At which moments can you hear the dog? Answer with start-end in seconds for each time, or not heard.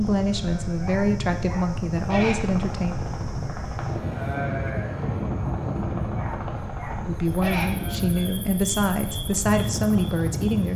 0.8-2.4, 6.1-7.7.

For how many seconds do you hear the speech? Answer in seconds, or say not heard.
7 s.